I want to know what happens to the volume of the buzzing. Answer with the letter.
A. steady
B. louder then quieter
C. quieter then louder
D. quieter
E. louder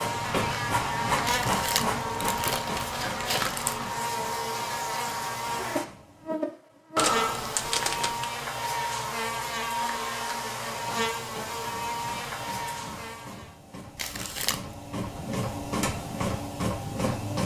A.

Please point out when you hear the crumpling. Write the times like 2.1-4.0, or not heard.
1.2-3.9, 7.0-8.3, 13.9-14.7.